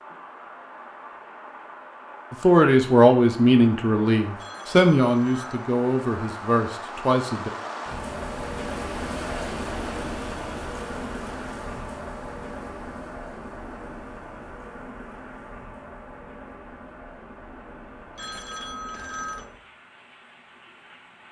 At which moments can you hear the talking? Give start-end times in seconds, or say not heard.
2.3-7.5.